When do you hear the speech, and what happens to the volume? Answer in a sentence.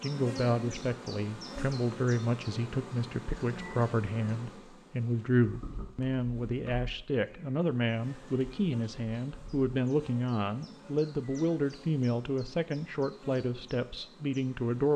The speech can be heard from 0.0 to 14.9 s, at a steady volume.